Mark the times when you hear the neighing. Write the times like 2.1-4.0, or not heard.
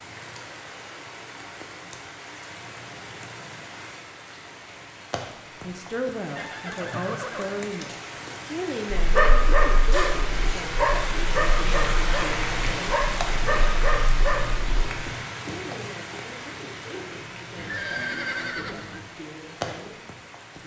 6.3-7.6, 17.6-19.0.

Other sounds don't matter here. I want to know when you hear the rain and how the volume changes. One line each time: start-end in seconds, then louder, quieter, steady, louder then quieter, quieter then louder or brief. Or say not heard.
0.0-20.6 louder then quieter.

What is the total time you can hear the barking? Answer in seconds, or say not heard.
6 s.